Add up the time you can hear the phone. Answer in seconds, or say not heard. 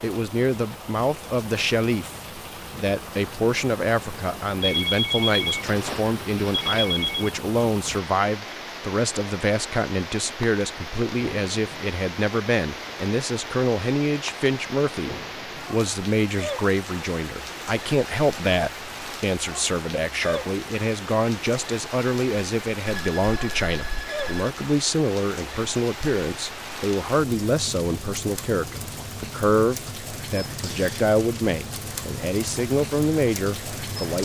4 s.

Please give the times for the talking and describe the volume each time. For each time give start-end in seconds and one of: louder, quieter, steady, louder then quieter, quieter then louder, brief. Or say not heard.
0.0-34.1 steady.